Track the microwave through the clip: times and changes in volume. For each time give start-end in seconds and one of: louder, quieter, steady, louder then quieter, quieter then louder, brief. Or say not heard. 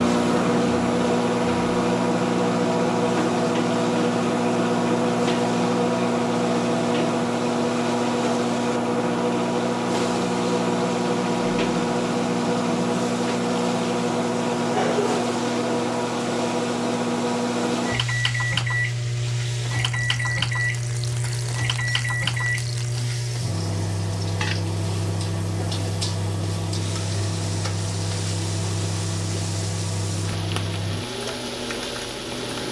0.0-32.6 quieter.